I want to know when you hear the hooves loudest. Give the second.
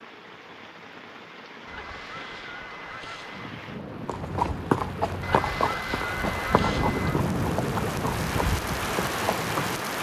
5 s.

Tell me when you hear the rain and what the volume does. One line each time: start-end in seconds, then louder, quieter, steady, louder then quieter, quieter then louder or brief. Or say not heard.
0.0-9.9 louder.